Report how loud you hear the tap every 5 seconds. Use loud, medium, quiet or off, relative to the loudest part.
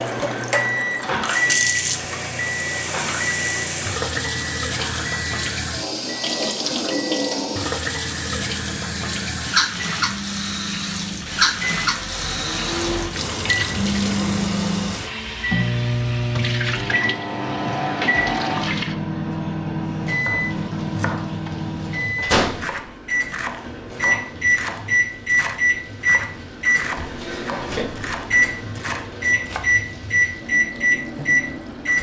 loud, loud, loud, medium, quiet, quiet, medium.